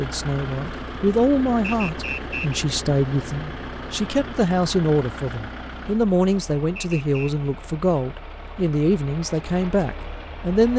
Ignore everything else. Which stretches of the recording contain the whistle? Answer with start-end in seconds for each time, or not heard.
1.6-2.6, 6.8-7.3.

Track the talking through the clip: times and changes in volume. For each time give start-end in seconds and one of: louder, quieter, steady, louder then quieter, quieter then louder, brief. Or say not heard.
0.0-10.7 steady.